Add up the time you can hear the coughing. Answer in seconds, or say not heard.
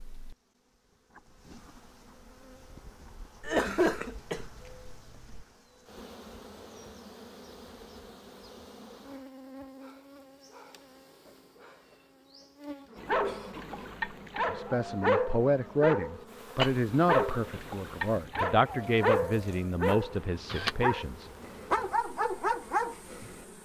3 s.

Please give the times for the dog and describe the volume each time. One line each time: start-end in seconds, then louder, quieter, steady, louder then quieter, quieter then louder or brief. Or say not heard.
12.9-23.4 steady.